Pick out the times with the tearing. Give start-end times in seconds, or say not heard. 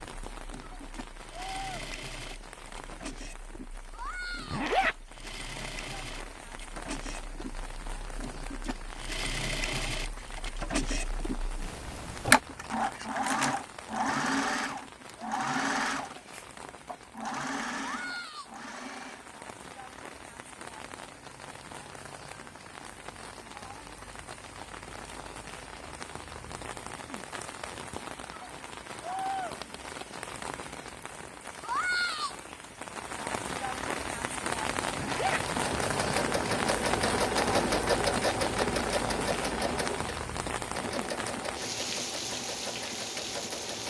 not heard.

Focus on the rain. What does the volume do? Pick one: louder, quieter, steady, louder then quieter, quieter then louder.
louder.